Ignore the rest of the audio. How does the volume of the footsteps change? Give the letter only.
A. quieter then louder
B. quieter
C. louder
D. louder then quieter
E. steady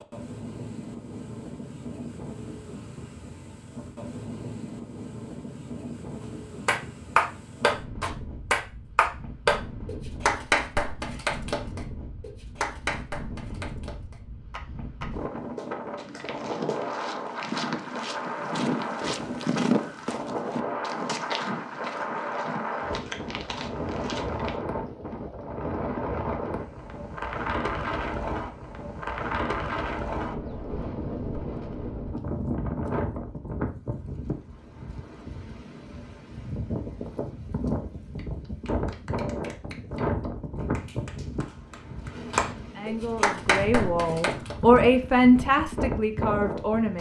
D.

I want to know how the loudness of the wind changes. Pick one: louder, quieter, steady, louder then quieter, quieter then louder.
louder.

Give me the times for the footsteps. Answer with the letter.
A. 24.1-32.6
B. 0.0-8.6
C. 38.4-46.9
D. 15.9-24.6
D.